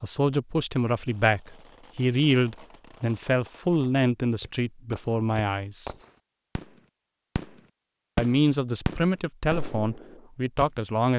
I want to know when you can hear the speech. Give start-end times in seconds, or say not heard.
0.0-6.0, 8.2-11.1.